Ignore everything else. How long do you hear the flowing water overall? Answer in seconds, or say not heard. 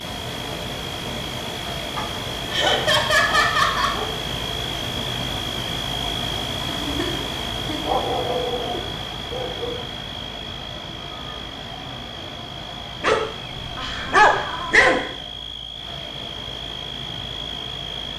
18 s.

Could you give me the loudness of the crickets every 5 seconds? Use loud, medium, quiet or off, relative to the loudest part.
loud, loud, medium, loud.